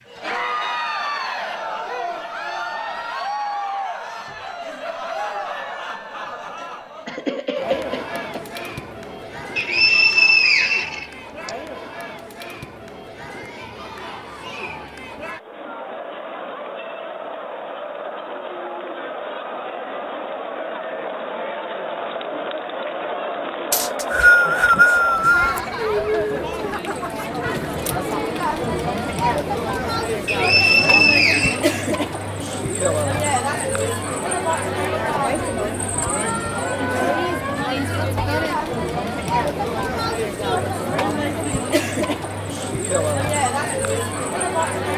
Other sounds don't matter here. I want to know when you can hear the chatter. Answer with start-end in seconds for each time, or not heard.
0.1-44.9.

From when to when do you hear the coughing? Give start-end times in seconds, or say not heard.
7.0-8.4.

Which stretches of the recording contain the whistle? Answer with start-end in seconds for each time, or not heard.
9.6-11.5, 23.7-25.6, 30.2-31.6.